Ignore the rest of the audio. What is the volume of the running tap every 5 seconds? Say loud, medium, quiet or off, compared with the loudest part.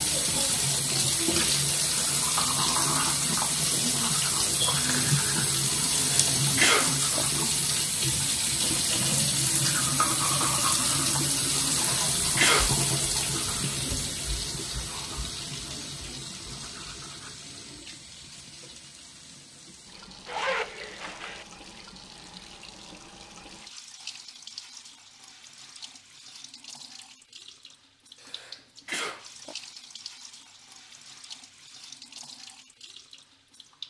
loud, loud, loud, quiet, quiet, quiet, quiet.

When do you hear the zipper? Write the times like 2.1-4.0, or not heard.
20.2-21.4.